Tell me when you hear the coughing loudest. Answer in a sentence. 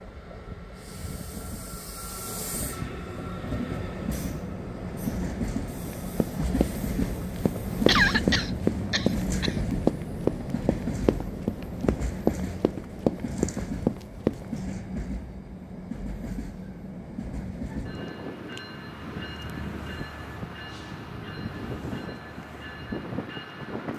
The volume of the coughing peaks at 8 seconds.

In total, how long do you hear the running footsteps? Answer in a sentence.
You can hear the running footsteps for 9 seconds altogether.